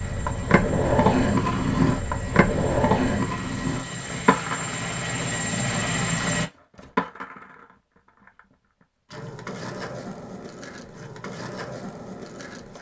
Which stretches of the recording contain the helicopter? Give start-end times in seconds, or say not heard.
0.0-6.5.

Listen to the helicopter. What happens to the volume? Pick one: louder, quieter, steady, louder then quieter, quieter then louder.
louder.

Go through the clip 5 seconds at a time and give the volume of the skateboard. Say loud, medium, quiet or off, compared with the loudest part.
loud, medium, quiet.